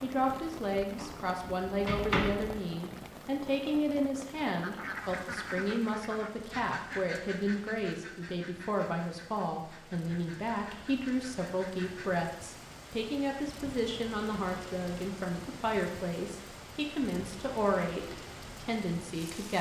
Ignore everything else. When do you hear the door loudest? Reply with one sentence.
The loudest moment of the door is at 2 seconds.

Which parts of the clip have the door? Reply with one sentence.
You can hear the door from 0.9 to 2.5 s.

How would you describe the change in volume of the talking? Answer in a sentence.
The loudness of the talking stays about the same.